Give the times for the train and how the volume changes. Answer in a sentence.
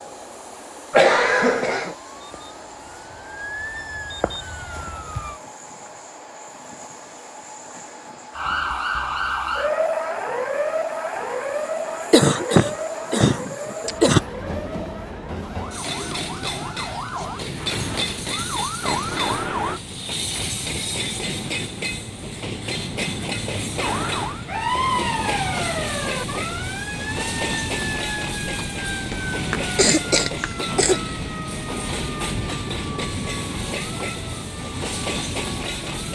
The train can be heard from 0.0 to 36.1 s, getting louder.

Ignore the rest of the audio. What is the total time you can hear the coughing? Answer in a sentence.
You can hear the coughing for 5 seconds altogether.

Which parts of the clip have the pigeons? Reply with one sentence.
The pigeons can't be heard in this clip.